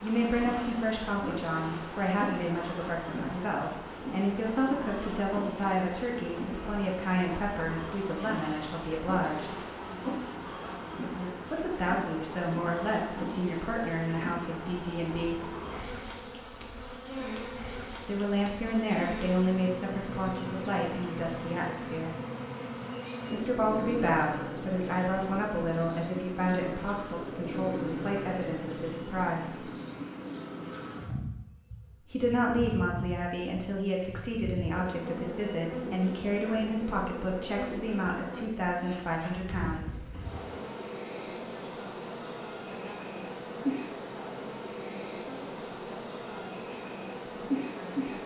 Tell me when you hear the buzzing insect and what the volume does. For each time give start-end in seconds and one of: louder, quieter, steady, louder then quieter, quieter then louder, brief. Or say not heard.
0.0-48.2 steady.